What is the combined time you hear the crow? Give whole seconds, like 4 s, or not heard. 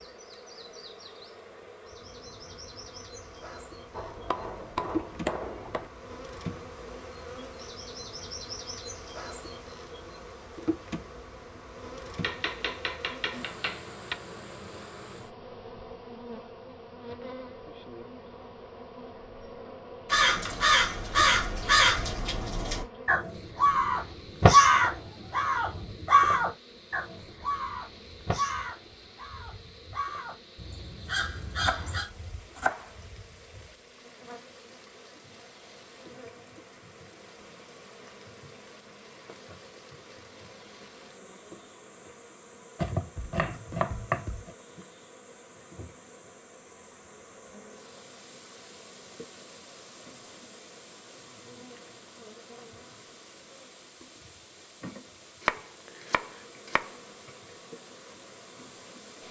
12 s.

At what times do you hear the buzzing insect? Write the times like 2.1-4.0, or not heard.
0.0-59.2.